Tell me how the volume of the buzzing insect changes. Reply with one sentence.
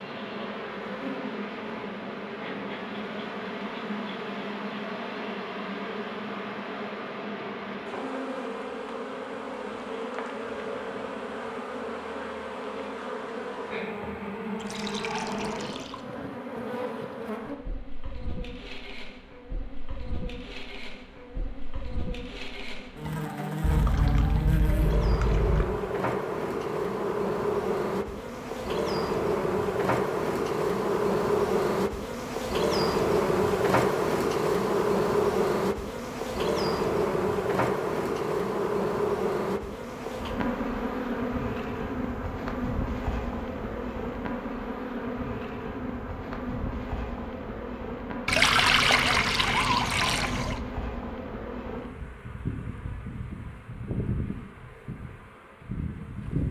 The loudness of the buzzing insect goes up, then down.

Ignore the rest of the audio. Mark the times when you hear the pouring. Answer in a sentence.
You can hear the pouring from 14.6 to 16.0 s, from 23.6 to 25.6 s and from 48.2 to 50.5 s.